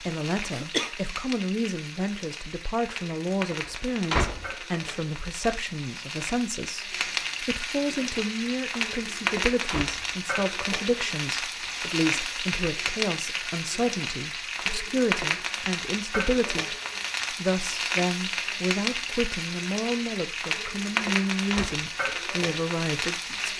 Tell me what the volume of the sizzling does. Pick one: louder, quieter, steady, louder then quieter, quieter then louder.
louder.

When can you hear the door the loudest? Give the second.
4 s.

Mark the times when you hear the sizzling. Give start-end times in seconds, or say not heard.
0.0-23.5.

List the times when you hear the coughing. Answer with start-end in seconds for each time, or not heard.
0.5-0.9.